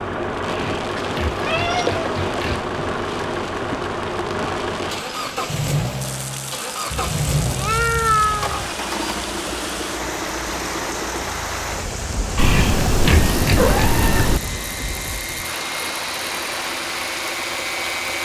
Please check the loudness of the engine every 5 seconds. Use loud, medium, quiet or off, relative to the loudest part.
loud, loud, medium, loud.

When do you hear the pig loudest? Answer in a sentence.
The volume of the pig peaks at 13 seconds.